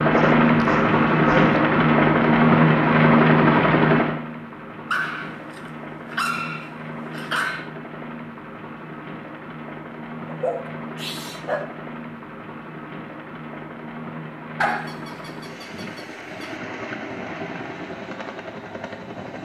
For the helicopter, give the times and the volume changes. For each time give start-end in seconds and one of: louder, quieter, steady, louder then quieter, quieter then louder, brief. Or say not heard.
0.0-19.4 quieter.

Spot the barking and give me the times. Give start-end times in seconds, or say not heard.
0.1-1.6, 4.9-7.7, 10.2-11.8, 14.6-16.5.